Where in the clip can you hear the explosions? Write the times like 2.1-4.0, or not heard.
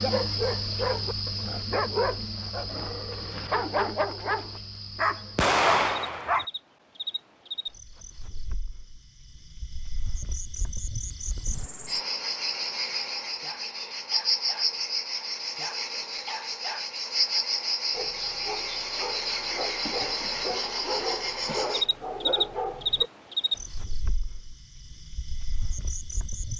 5.3-6.5.